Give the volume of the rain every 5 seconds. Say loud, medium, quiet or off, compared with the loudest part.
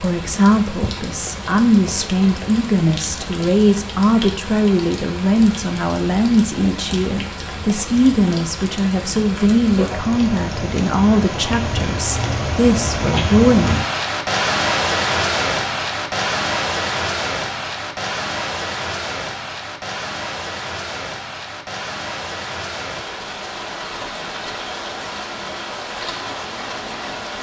medium, medium, loud, loud, medium, medium.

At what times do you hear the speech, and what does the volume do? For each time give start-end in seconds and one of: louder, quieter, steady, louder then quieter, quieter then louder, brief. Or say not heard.
0.0-13.8 steady.